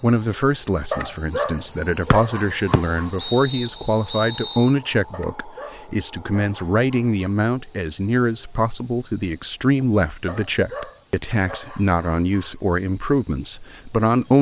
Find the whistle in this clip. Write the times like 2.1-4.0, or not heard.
2.1-4.7.